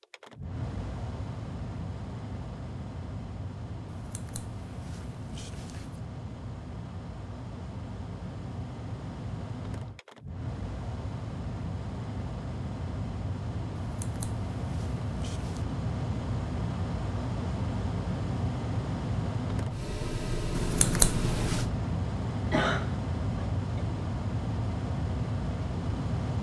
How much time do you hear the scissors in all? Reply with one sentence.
You can hear the scissors for 5 seconds altogether.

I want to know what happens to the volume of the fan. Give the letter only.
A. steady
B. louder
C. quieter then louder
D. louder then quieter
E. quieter
B.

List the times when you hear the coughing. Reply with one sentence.
You can hear the coughing from 22.5 to 23.8 s.